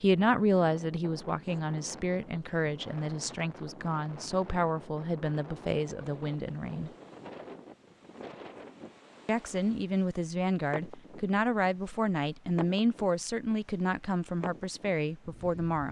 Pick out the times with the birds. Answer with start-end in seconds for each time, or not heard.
not heard.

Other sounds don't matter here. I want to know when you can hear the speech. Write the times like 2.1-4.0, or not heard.
0.0-6.9, 9.2-15.8.